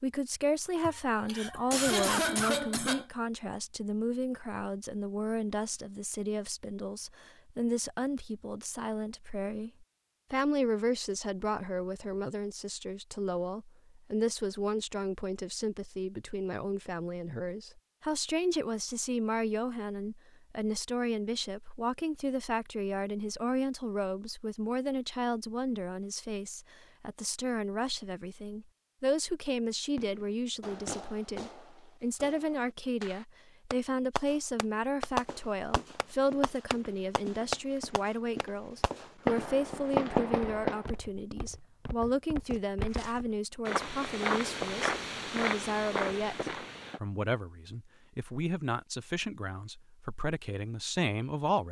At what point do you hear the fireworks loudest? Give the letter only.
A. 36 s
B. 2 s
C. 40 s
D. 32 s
C.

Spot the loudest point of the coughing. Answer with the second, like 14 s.
2 s.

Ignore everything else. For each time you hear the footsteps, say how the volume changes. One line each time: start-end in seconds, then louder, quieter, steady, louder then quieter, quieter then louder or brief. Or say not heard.
35.0-47.0 louder.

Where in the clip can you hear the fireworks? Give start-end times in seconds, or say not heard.
29.9-41.0.